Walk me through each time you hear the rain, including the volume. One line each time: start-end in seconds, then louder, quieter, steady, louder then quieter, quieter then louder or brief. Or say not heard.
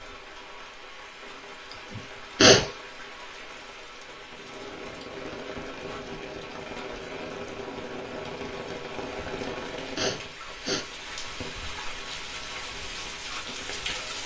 0.0-14.2 louder.